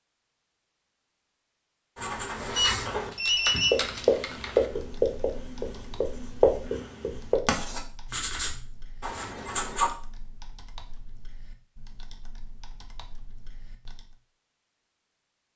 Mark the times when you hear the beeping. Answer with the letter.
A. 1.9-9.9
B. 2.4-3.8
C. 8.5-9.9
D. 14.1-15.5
B.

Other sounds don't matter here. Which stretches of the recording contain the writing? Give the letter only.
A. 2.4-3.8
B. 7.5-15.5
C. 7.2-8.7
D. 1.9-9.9
D.